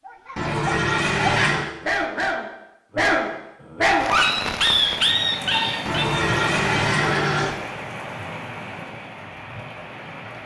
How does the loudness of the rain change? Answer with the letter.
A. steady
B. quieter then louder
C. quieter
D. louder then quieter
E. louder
C.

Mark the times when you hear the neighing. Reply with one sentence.
You can hear the neighing from 0.3 to 1.7 s and from 5.8 to 7.5 s.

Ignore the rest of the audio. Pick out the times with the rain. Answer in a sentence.
You can hear the rain from 4.0 to 10.4 s.